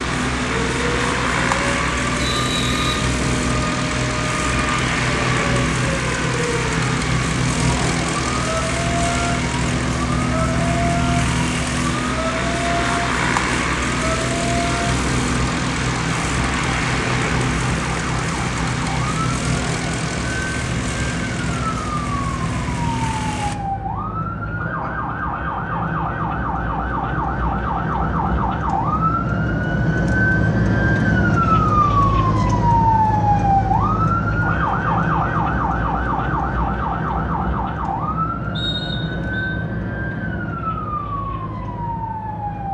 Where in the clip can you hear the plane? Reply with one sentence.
You can hear the plane from 0.0 to 23.6 s.